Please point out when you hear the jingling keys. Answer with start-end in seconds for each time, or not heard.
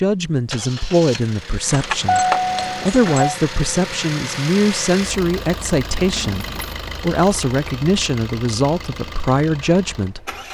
1.6-3.4, 6.0-6.8.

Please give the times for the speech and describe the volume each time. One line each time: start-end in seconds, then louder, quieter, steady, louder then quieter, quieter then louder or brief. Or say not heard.
0.0-10.3 steady.